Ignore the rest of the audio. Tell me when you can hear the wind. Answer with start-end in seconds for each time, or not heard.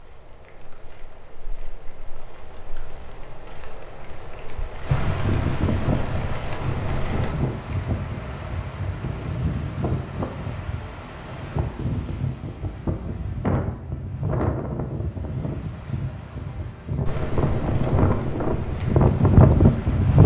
4.8-20.2.